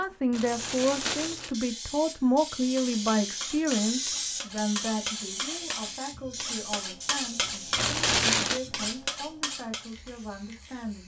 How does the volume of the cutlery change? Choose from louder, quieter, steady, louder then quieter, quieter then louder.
louder.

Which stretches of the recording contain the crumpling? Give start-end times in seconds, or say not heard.
0.3-1.6, 7.8-8.6.